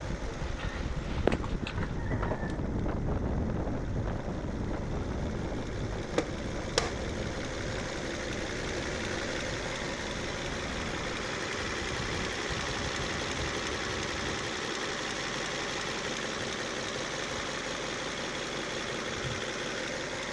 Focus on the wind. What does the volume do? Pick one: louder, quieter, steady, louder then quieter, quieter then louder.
quieter.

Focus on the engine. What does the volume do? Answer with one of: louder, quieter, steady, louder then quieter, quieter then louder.
louder.